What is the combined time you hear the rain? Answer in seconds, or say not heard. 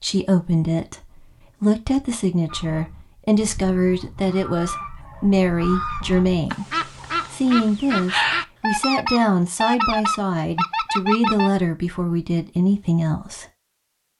not heard.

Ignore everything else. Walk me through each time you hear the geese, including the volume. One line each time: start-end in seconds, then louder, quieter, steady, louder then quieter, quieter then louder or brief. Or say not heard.
2.5-11.5 louder.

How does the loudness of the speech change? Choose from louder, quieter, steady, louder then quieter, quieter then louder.
steady.